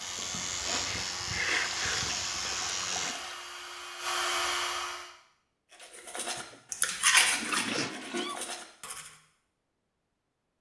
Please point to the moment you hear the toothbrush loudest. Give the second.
7 s.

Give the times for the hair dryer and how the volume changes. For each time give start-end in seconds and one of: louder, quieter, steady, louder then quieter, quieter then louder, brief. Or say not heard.
0.0-5.1 louder.